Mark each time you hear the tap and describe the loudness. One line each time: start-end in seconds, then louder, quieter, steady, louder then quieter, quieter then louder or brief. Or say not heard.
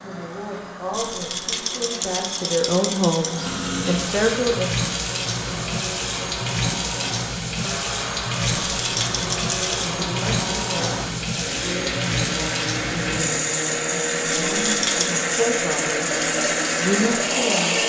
0.0-17.8 louder.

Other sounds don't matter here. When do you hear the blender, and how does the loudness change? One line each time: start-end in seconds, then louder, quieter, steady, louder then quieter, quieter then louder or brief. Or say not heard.
0.0-17.8 louder.